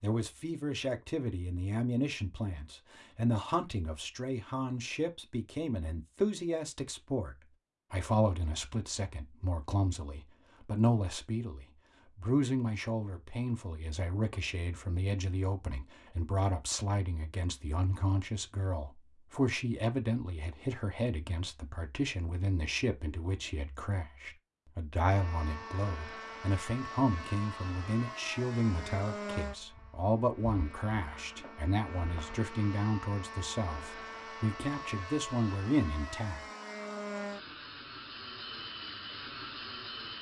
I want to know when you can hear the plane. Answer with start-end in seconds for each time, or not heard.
25.1-40.1.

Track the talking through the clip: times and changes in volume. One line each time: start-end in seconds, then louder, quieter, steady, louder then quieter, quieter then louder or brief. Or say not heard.
0.0-36.4 steady.